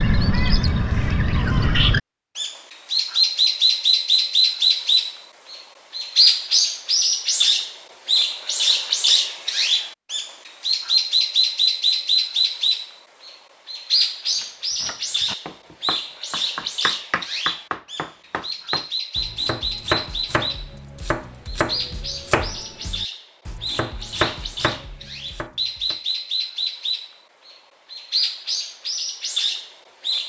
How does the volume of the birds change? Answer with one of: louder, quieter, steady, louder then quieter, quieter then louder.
quieter.